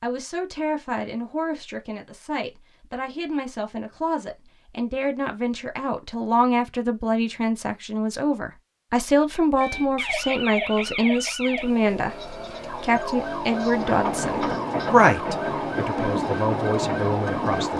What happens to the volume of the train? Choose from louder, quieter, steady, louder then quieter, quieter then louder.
steady.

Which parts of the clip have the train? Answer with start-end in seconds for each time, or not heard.
13.7-17.7.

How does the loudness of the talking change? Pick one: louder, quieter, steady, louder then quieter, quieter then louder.
louder.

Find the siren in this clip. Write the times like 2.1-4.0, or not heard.
9.6-17.7.